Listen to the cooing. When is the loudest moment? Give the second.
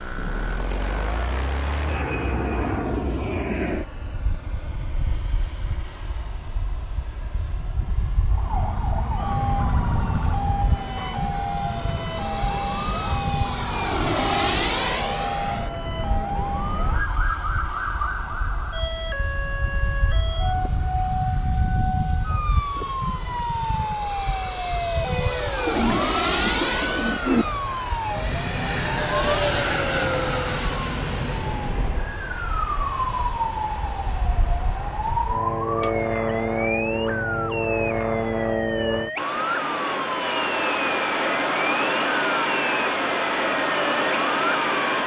27 s.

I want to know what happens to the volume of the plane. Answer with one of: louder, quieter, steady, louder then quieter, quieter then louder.
louder.